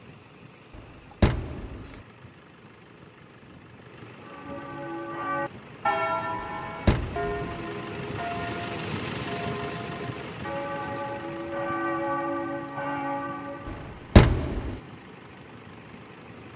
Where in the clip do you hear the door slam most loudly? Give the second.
14 s.